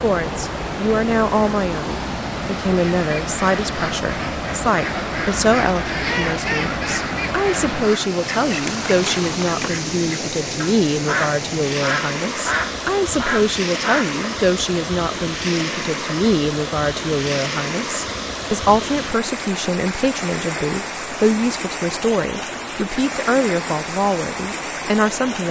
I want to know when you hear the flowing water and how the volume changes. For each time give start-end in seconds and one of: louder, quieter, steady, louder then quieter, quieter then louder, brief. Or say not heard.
0.0-25.4 steady.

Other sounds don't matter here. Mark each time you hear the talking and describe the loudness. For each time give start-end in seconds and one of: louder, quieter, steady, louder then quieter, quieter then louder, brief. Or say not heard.
0.0-25.4 steady.